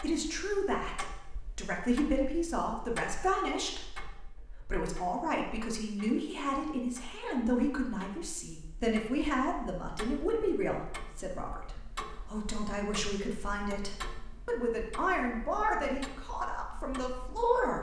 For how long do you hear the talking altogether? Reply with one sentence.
The talking can be heard for 18 seconds in total.